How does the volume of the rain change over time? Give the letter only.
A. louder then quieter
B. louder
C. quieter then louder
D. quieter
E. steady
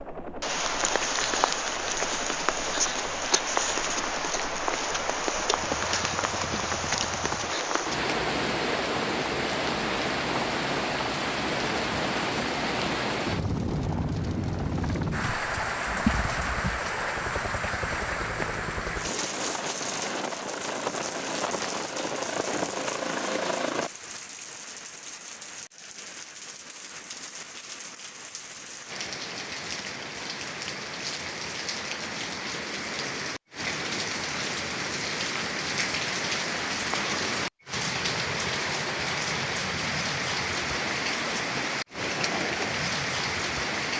C.